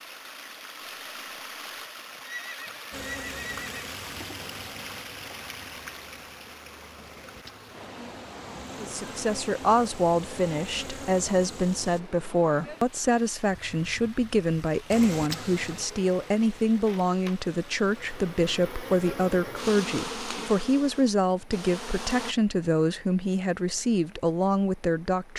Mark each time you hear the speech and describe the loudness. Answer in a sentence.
You can hear the speech from 8.8 to 25.3 s, at a steady volume.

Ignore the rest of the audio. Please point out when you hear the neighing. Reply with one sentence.
You can hear the neighing from 2.2 to 3.8 s.